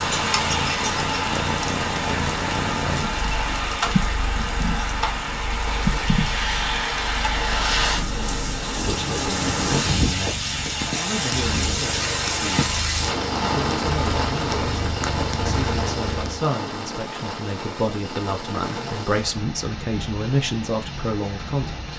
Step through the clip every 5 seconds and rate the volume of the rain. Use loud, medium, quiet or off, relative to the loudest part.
loud, loud, loud, medium, medium.